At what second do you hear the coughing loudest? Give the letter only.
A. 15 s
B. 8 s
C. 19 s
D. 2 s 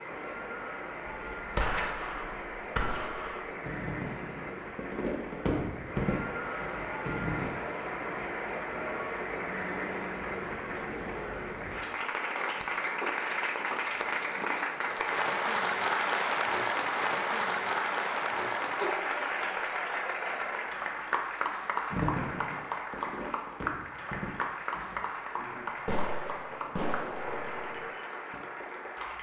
C.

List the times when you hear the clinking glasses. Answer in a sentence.
You can't hear the clinking glasses here.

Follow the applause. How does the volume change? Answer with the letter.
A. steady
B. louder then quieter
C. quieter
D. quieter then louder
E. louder
B.